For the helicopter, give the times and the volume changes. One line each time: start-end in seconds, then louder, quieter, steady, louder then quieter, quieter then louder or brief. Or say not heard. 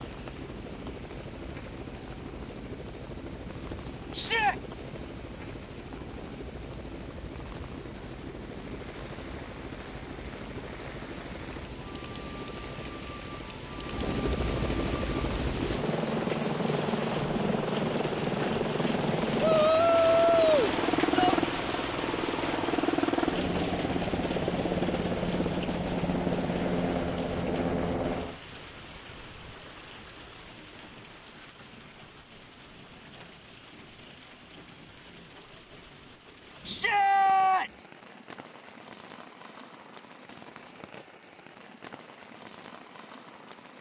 0.0-28.4 louder.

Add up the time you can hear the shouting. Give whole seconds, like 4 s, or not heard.
4 s.